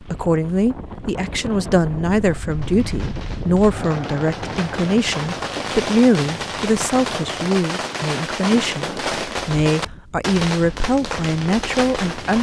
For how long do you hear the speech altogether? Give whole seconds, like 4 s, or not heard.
12 s.